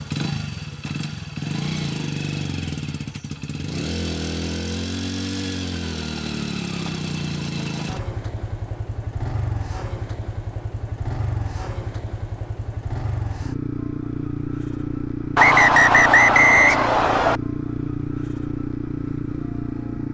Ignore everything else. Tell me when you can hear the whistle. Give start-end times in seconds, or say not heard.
15.3-17.4.